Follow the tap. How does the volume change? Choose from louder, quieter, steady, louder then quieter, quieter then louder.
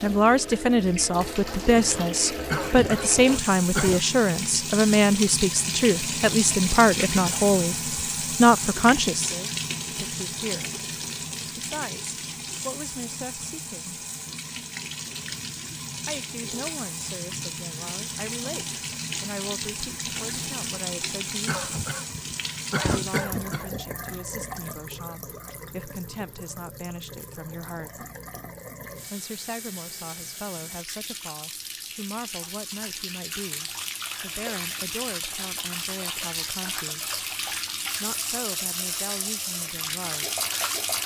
quieter then louder.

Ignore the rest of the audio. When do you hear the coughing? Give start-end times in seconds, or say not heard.
2.5-4.0, 21.4-23.9.